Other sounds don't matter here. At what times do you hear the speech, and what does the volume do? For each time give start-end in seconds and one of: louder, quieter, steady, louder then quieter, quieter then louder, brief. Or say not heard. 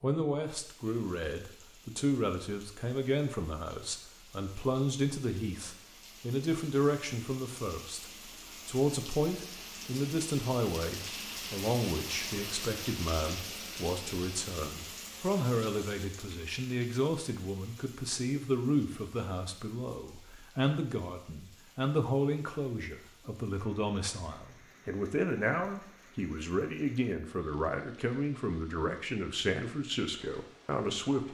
0.0-31.3 steady.